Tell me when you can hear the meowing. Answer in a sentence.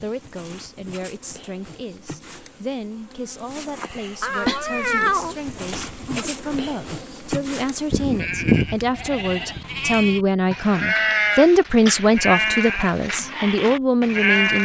You can hear the meowing from 4.2 to 6.2 s.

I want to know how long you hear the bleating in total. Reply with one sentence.
The bleating can be heard for 7 seconds in total.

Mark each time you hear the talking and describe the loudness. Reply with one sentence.
The talking can be heard from 0.0 to 14.6 s, getting louder.